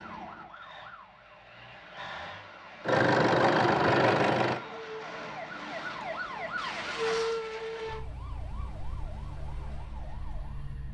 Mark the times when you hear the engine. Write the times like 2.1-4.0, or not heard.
2.8-4.6.